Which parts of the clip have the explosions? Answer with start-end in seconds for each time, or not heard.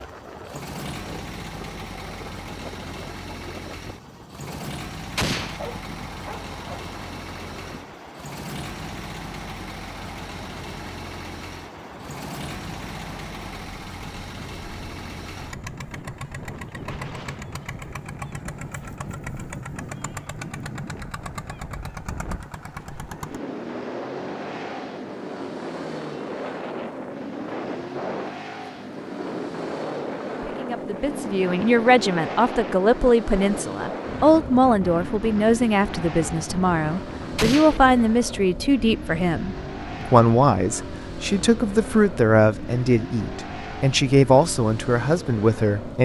5.2-5.6, 37.4-37.8.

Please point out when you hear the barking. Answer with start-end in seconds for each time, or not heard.
5.5-6.9.